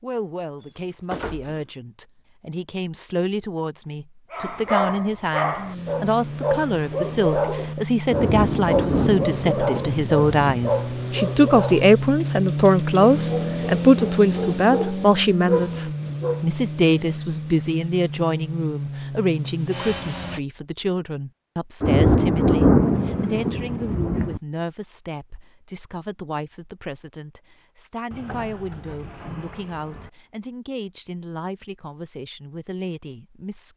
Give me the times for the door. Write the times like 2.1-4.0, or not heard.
0.6-1.7, 28.1-30.1.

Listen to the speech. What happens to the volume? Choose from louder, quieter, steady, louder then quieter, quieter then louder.
louder then quieter.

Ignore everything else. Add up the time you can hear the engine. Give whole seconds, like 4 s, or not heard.
15 s.